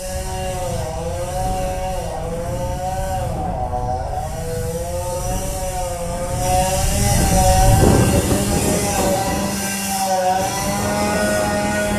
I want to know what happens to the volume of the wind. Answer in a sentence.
The volume of the wind goes up, then down.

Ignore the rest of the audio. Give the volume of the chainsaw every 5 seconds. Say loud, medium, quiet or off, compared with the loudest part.
medium, loud, loud.